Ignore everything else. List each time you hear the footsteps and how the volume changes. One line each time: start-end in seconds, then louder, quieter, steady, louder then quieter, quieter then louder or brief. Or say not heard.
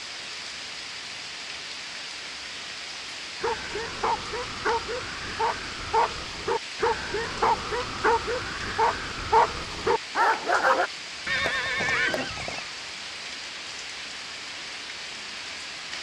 not heard.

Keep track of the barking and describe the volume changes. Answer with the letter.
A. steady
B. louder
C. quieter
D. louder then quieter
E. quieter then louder
B.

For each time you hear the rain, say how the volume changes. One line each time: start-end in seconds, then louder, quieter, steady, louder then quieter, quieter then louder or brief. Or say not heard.
0.0-15.9 steady.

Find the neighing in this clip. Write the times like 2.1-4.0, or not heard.
11.2-12.7.